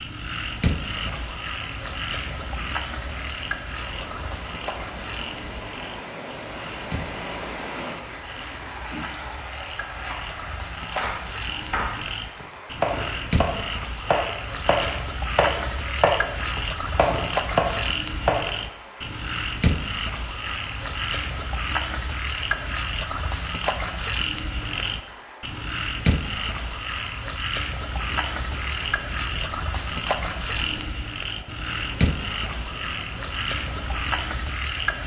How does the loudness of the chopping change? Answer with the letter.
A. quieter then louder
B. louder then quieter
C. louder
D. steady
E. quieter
C.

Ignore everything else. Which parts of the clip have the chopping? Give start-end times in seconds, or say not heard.
10.9-18.6.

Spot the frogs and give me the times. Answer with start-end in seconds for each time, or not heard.
0.0-35.0.